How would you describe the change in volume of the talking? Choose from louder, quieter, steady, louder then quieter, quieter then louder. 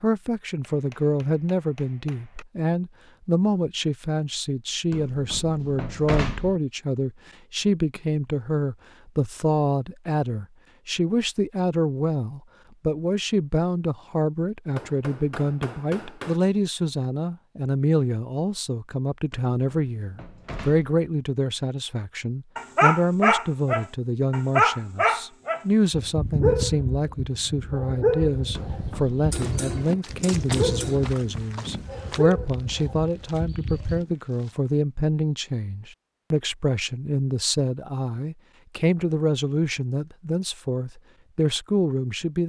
steady.